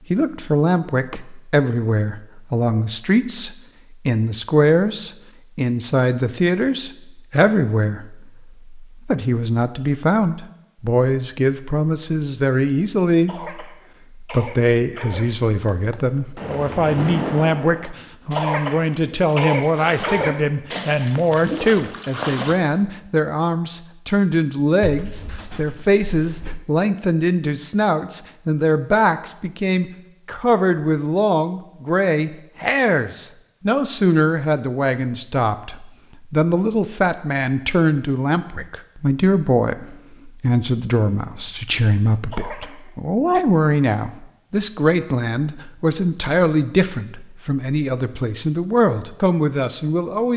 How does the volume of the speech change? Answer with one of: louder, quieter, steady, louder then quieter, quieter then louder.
steady.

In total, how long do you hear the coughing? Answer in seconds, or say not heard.
5 s.